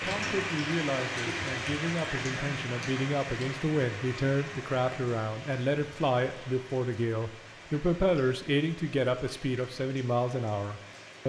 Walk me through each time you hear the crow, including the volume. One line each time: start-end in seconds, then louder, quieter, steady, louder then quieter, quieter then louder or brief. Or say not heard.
not heard.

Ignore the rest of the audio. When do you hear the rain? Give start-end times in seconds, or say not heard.
0.0-11.2.